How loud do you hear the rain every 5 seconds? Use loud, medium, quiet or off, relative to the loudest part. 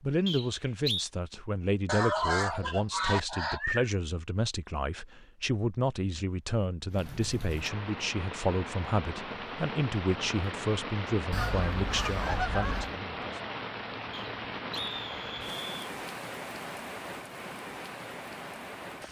off, loud, loud, loud.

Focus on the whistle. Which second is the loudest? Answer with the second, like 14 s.
1 s.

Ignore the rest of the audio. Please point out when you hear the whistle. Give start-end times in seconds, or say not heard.
0.2-1.1, 14.1-15.7.